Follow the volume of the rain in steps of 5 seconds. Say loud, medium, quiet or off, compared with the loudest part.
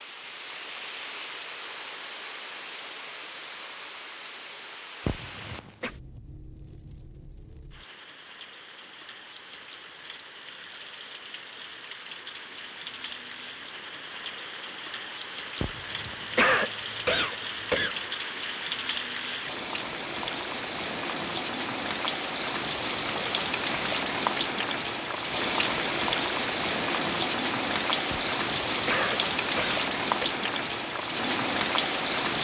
quiet, quiet, quiet, medium, loud, loud, loud.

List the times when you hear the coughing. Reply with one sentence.
You can hear the coughing from 5.0 to 5.9 s, from 15.6 to 18.0 s and from 28.1 to 30.2 s.